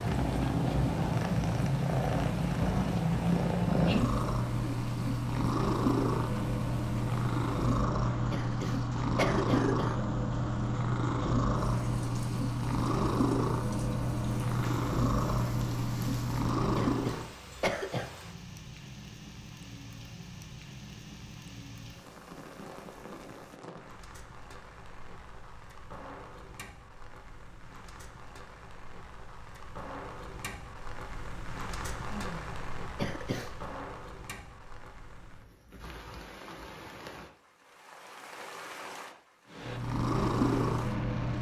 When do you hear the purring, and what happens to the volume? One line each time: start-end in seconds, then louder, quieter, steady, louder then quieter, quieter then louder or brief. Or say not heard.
0.0-17.4 steady
39.5-41.3 brief.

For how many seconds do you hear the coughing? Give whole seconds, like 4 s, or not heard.
4 s.